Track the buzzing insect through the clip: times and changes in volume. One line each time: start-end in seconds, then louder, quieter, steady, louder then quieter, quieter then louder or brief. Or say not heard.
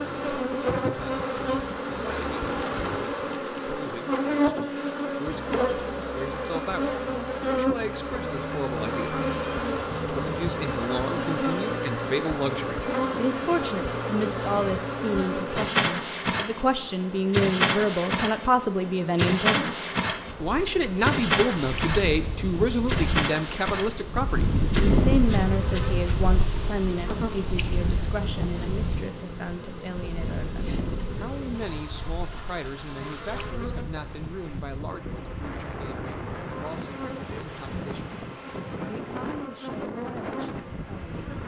0.0-41.4 quieter.